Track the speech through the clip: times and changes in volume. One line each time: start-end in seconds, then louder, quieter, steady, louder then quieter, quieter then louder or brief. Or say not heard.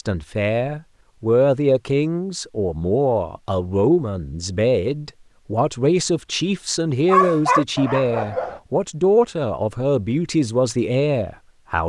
0.0-11.8 steady.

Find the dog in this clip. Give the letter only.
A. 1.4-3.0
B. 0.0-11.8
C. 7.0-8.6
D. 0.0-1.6
C.